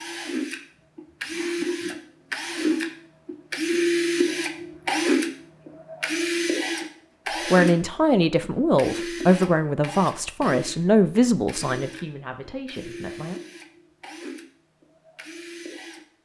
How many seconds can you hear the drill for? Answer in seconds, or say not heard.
16 s.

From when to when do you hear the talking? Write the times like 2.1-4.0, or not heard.
7.5-13.4.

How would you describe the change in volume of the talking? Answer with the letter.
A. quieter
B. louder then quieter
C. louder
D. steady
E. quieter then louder
A.